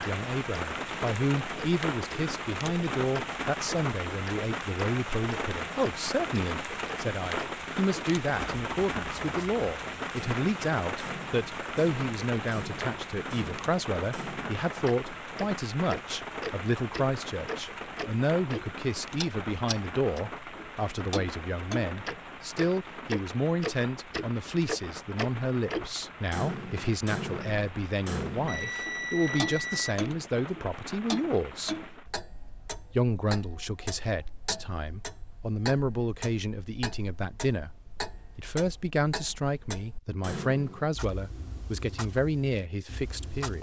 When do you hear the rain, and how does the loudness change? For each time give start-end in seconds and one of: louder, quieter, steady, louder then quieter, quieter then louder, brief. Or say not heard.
0.0-32.1 quieter.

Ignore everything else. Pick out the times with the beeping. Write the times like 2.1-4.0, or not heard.
28.4-29.9.